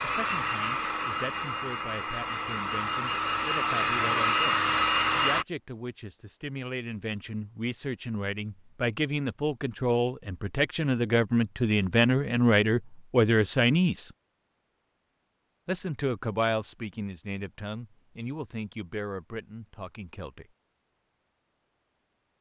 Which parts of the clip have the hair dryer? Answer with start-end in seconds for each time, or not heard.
0.0-5.5.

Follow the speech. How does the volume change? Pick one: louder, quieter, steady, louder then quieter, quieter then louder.
louder then quieter.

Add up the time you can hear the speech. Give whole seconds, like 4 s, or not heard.
19 s.